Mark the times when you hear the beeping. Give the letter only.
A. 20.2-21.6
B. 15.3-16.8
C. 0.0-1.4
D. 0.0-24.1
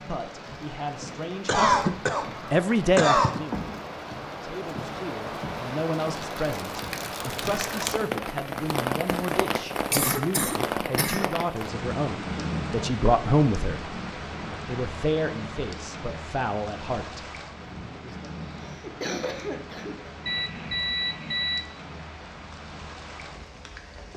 A.